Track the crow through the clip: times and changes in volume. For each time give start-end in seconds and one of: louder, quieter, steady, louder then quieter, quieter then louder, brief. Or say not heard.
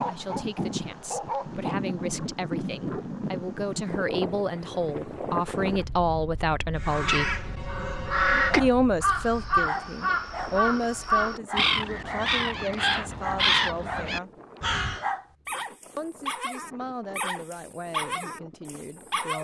6.8-15.1 steady.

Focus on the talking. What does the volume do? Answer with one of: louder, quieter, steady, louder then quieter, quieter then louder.
louder then quieter.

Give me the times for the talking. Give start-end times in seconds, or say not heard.
0.1-7.3, 8.6-14.3, 15.9-19.3.